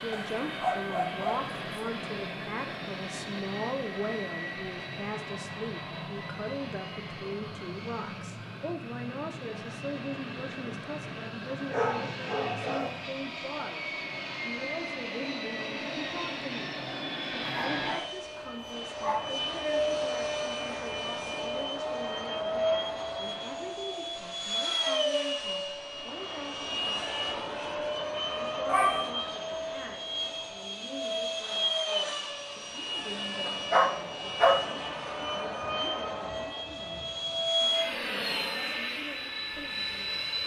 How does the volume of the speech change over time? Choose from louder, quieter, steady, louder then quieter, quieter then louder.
quieter.